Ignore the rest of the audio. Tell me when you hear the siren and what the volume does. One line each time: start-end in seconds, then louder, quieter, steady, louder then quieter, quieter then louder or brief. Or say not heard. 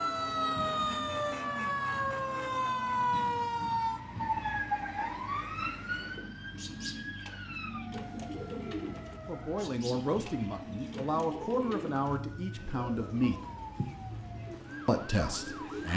0.0-15.9 quieter.